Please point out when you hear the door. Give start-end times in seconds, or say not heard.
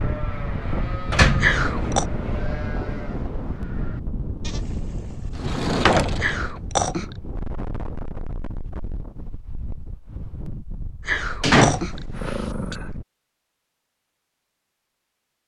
1.1-1.6, 5.3-6.5, 11.4-12.8.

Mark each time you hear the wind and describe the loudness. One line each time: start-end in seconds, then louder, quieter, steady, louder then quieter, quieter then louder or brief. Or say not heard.
0.0-13.1 quieter.